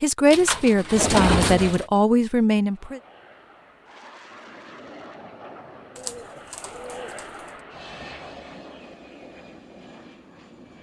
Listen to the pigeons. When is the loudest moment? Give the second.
1 s.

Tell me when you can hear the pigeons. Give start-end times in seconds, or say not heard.
0.3-1.9, 6.0-7.2.